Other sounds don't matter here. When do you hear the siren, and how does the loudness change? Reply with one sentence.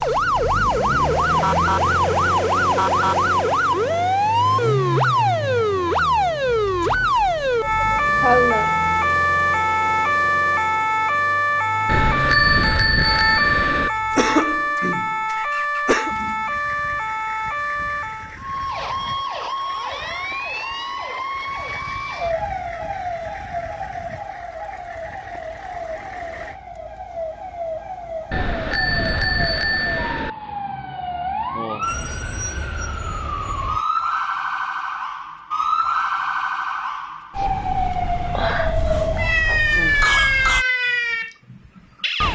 You can hear the siren from 0.0 to 42.2 s, getting quieter then louder.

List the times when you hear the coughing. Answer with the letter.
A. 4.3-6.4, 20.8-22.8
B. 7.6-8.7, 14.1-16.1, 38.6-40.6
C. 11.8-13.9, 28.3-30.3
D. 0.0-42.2
B.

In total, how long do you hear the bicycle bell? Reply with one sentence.
You can hear the bicycle bell for 4 seconds altogether.